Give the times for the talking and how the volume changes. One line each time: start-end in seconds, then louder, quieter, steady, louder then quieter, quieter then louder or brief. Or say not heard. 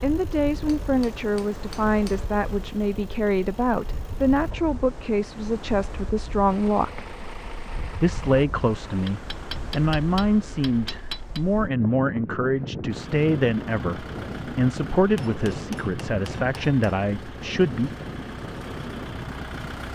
0.0-7.2 steady
8.0-17.9 steady.